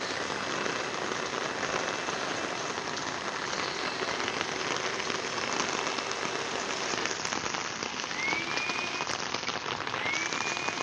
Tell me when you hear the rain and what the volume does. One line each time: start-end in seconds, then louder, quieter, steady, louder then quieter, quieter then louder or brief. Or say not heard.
0.0-10.7 steady.